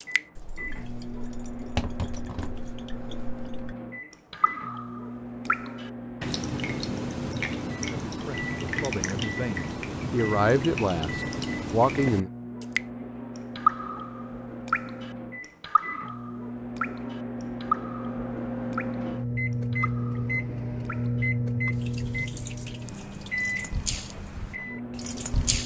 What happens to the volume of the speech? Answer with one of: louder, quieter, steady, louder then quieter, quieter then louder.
louder.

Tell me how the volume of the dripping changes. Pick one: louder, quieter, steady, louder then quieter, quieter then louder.
louder then quieter.